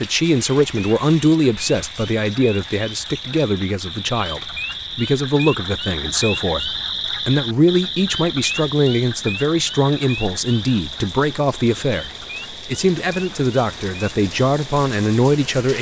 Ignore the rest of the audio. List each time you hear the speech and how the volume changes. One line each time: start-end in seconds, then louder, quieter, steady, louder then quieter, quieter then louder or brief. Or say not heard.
0.0-15.7 steady.